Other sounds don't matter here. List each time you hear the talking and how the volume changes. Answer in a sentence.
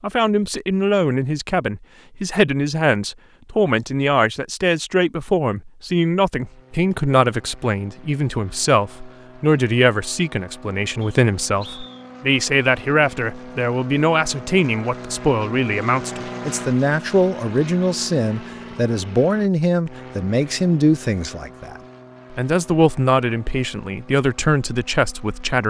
You can hear the talking from 0.0 to 25.6 s, at a steady volume.